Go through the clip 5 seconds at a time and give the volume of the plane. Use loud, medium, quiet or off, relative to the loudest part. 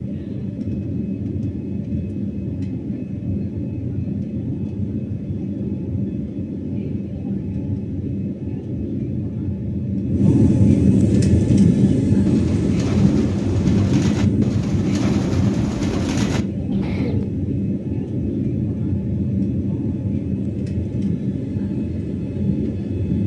medium, medium, loud, medium, medium.